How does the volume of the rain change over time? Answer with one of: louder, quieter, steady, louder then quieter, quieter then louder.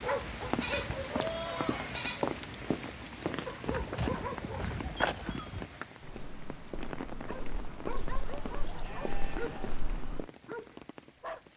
quieter.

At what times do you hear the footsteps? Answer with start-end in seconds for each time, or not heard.
0.4-10.2.